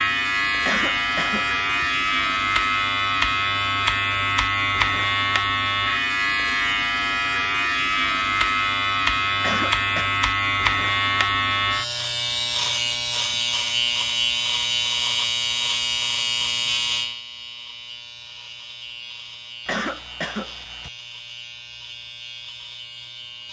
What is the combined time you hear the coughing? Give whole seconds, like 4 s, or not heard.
3 s.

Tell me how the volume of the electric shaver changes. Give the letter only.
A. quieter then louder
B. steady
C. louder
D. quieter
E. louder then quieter
D.